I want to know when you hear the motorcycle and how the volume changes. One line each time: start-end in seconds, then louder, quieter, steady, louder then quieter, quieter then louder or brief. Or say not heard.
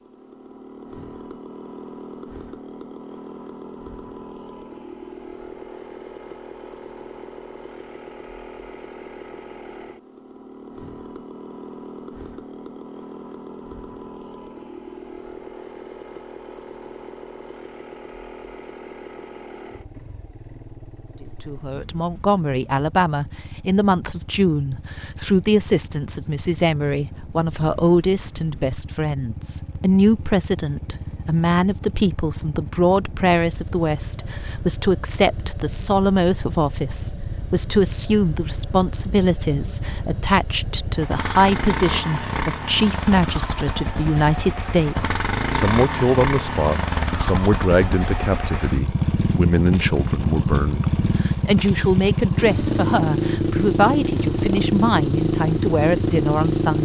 0.0-56.7 louder.